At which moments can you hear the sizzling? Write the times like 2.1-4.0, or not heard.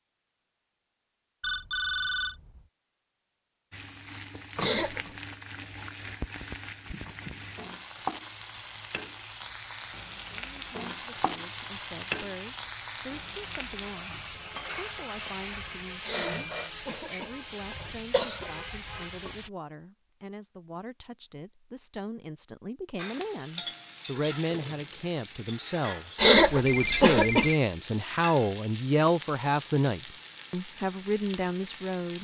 3.7-19.5, 22.9-32.1.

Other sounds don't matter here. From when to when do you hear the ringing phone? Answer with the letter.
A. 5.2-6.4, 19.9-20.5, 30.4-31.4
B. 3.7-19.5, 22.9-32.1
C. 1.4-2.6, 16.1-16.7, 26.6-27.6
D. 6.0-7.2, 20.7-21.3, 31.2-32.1
C.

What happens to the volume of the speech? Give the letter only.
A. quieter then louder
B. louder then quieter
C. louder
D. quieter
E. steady
C.